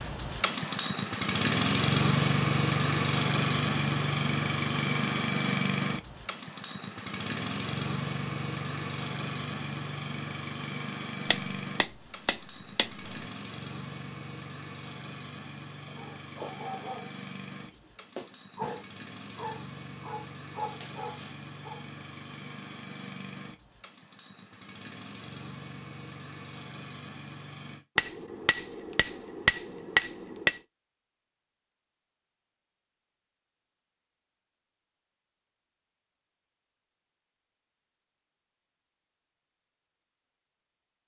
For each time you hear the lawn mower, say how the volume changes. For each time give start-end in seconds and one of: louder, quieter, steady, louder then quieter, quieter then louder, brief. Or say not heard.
0.0-27.9 quieter.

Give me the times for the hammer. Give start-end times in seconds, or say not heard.
11.3-13.2, 27.9-30.6.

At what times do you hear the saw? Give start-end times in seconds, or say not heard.
not heard.